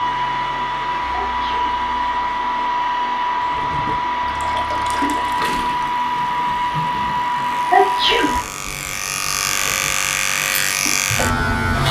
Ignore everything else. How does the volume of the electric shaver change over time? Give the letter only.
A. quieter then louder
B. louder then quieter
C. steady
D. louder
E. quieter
D.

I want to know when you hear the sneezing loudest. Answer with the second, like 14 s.
8 s.